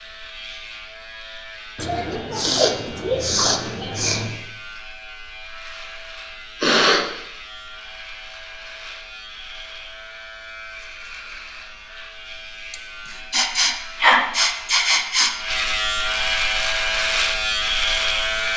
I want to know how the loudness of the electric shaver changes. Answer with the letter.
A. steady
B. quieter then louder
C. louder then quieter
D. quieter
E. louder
E.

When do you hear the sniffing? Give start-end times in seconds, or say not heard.
1.8-4.3, 6.6-7.0, 12.7-15.3.